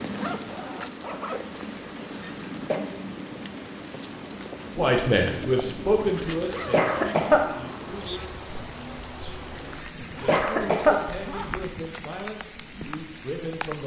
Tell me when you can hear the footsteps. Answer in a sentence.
The footsteps can't be heard in this clip.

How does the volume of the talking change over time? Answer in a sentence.
The volume of the talking goes down.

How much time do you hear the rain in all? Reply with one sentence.
The rain can be heard for 14 seconds in total.